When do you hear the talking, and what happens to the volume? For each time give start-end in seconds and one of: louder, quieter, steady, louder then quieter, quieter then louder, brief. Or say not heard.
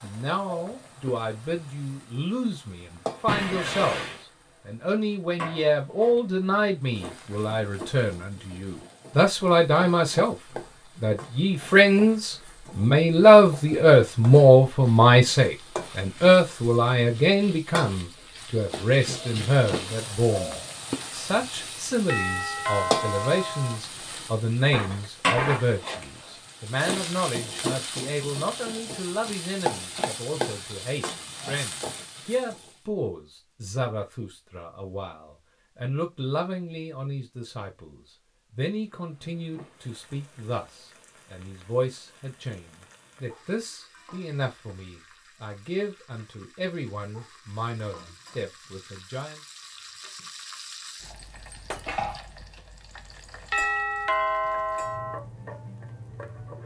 0.0-10.3 louder
11.0-49.4 quieter.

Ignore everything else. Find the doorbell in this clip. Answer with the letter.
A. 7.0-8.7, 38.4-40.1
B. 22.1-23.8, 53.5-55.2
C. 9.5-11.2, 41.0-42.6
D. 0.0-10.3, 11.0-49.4
B.